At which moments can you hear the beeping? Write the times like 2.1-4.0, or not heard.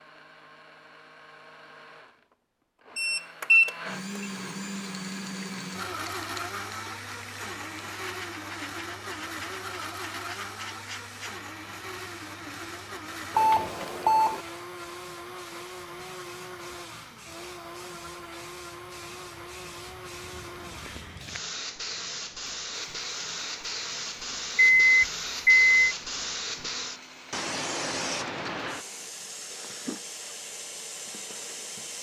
3.0-4.2, 13.3-14.4, 24.8-25.9.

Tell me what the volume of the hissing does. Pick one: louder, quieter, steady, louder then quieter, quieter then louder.
quieter then louder.